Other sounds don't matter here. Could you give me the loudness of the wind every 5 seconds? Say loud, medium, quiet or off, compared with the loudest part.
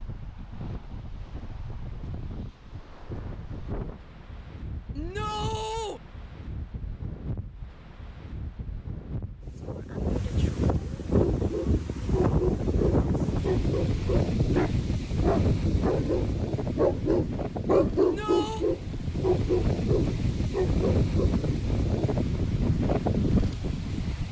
quiet, quiet, loud, loud, loud.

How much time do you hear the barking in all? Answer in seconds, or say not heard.
10 s.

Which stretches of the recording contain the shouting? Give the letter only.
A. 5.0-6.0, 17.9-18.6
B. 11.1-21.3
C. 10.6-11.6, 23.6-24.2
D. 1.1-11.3
A.